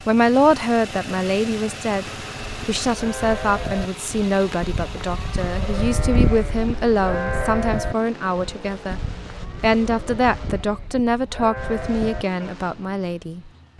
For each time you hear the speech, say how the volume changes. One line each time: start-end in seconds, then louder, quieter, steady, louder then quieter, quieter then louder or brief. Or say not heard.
0.1-13.7 steady.